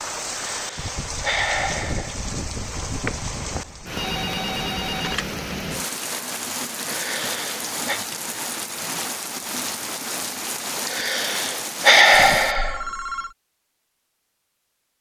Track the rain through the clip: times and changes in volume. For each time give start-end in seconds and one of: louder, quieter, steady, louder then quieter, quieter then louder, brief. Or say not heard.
0.0-12.6 steady.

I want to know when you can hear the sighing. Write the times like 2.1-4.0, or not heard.
0.3-2.1, 6.8-8.0, 10.8-12.8.